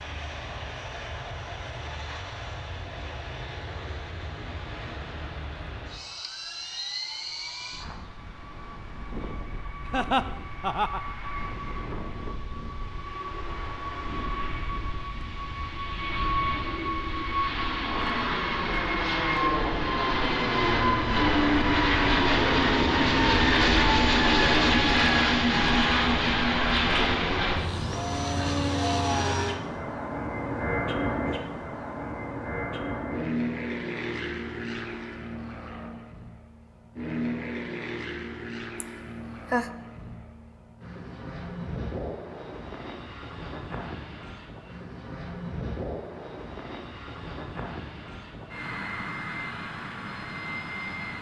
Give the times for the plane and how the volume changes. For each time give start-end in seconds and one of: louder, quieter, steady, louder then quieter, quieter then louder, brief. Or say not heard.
0.0-51.1 louder then quieter.